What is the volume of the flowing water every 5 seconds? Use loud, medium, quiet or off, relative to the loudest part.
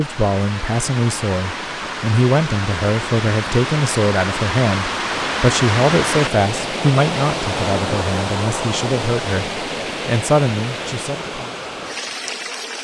loud, loud, medium.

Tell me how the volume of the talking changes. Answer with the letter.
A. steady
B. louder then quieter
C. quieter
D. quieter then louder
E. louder
A.